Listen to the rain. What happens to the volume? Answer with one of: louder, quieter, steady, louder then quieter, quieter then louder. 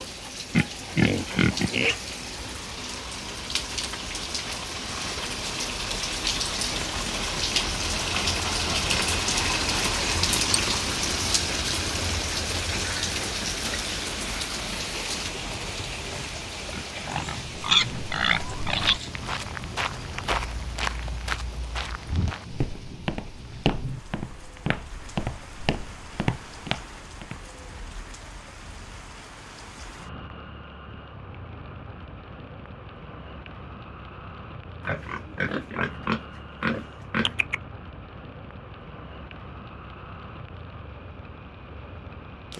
quieter.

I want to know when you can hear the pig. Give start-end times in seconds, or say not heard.
0.5-2.0, 16.6-19.1, 34.9-37.5.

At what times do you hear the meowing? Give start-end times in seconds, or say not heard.
not heard.